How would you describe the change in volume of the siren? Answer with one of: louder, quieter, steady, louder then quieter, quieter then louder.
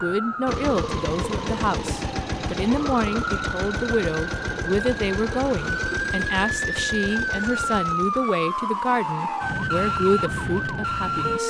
louder.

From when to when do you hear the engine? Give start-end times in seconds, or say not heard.
0.0-8.3.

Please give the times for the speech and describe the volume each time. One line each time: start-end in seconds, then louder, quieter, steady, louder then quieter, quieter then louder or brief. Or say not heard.
0.0-11.4 steady.